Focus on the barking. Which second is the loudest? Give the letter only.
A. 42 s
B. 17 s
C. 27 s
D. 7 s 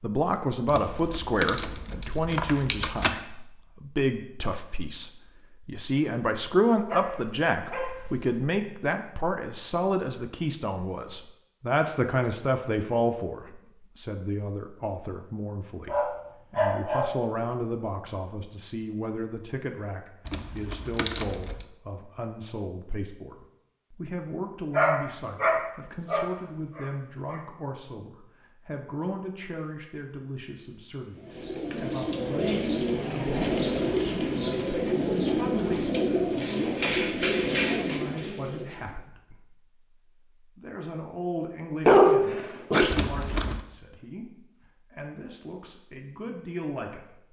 A.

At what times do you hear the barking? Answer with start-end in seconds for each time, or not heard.
6.8-8.4, 15.8-17.1, 24.8-27.4, 41.9-43.5.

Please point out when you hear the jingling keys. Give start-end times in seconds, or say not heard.
0.7-3.2, 20.2-21.6, 42.9-43.6.